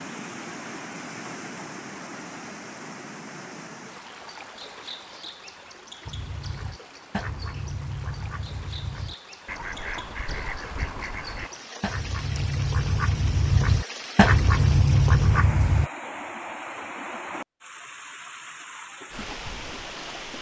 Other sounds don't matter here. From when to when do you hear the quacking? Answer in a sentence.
You can hear the quacking from 6.0 to 15.9 s.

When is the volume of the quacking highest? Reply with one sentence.
The loudest moment of the quacking is at 14 seconds.